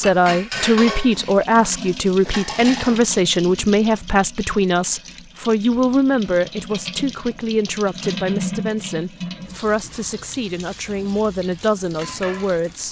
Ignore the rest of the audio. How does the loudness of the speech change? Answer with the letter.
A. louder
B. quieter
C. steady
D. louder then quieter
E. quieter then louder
B.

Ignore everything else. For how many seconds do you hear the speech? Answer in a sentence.
You can hear the speech for 13 seconds altogether.